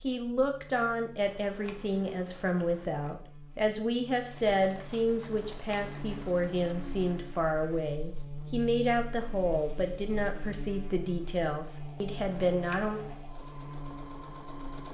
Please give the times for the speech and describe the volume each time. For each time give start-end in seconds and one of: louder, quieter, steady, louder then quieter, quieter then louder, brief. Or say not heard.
0.0-13.0 steady.